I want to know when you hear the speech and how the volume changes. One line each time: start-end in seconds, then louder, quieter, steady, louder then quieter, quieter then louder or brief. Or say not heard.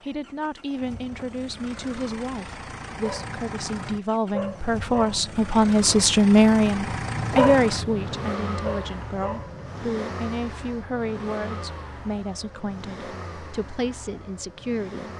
0.0-15.1 louder then quieter.